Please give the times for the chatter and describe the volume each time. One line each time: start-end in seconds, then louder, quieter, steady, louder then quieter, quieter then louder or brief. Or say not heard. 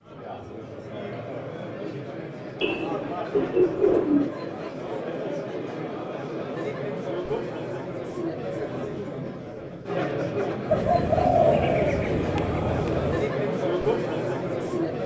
0.0-15.0 louder.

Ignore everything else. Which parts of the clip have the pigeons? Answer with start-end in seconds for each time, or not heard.
2.6-4.3, 10.7-13.2.